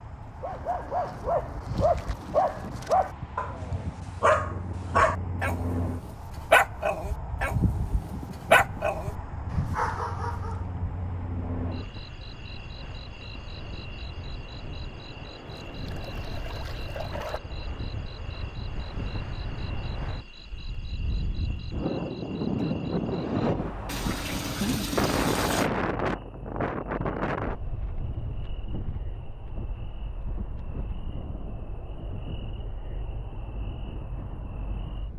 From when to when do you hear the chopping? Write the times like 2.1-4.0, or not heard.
not heard.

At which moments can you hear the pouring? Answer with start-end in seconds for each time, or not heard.
1.7-2.5, 15.4-17.4, 23.9-25.7.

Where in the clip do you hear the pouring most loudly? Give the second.
25 s.